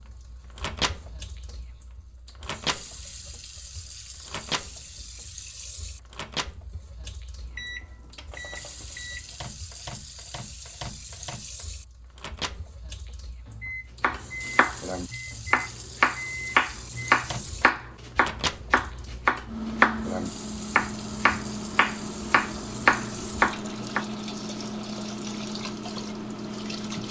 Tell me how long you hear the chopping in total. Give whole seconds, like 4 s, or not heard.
10 s.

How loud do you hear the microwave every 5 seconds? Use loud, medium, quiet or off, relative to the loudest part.
loud, medium, medium, loud, loud, loud.